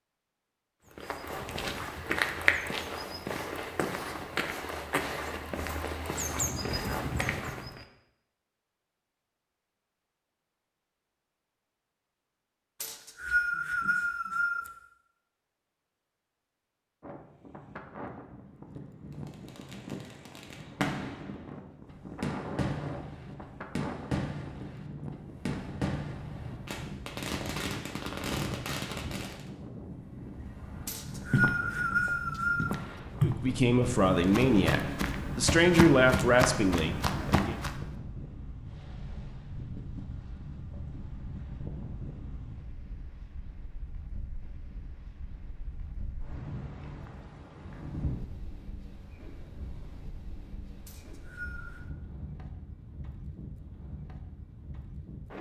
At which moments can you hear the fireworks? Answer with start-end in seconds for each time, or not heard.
19.2-29.4.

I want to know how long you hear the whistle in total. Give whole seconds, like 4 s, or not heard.
5 s.